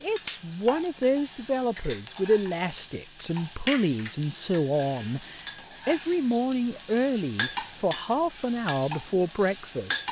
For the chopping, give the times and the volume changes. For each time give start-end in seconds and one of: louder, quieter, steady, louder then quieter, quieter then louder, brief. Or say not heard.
not heard.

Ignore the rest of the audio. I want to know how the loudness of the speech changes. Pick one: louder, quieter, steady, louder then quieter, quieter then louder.
steady.